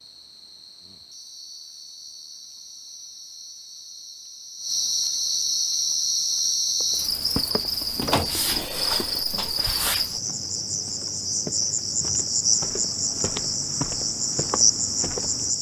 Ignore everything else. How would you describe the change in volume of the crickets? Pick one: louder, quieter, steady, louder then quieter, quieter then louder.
louder.